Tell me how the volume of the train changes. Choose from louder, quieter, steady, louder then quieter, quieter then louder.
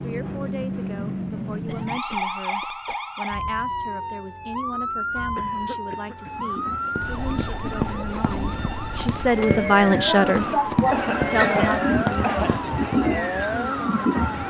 louder.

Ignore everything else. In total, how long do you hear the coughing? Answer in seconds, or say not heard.
5 s.